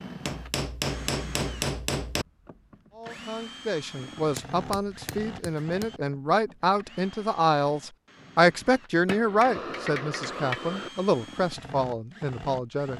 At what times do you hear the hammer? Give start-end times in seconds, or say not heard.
0.2-2.2, 4.3-5.9, 9.1-10.9.